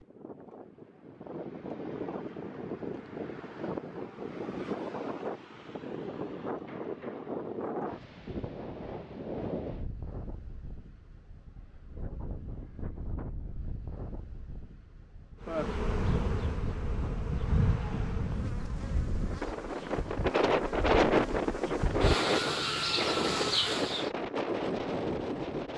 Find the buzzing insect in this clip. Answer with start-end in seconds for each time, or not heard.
15.4-24.1.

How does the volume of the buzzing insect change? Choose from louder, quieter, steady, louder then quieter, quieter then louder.
quieter then louder.